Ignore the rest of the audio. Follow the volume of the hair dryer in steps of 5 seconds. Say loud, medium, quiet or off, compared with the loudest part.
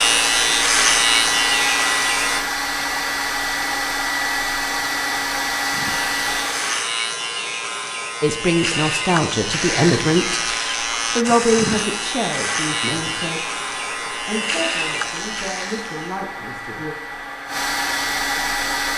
loud, loud, medium, loud.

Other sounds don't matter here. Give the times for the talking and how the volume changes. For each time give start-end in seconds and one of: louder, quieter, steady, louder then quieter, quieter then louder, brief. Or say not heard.
8.2-10.4 brief
11.2-16.9 quieter.